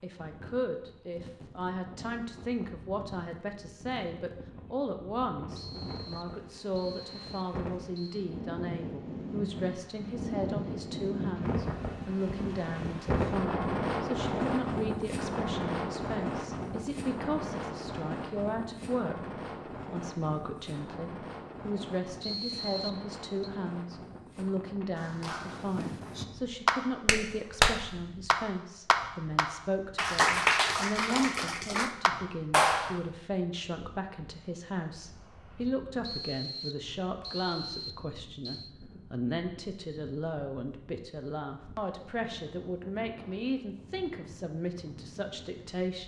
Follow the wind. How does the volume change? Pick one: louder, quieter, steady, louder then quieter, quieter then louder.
louder then quieter.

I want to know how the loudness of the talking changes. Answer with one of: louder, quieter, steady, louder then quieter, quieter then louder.
steady.